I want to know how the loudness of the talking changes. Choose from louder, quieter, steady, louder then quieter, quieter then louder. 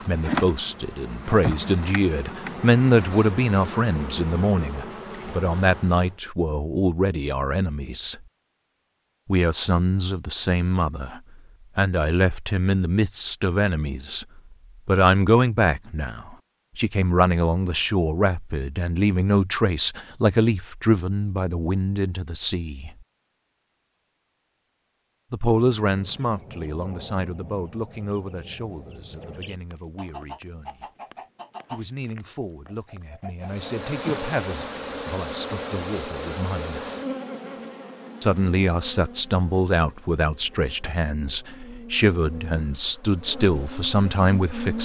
quieter then louder.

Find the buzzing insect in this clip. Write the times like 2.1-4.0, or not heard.
0.0-6.2, 33.4-44.7.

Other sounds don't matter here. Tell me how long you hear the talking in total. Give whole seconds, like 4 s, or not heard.
38 s.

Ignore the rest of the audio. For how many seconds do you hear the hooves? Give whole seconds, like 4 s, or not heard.
not heard.